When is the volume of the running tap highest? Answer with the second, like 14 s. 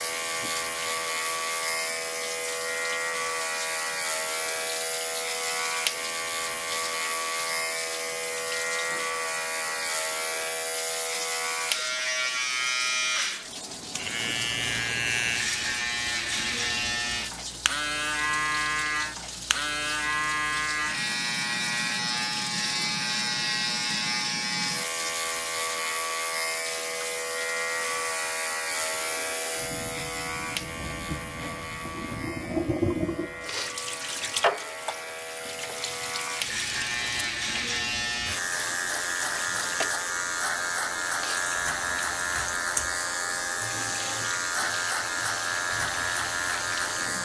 33 s.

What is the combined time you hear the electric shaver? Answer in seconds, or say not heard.
47 s.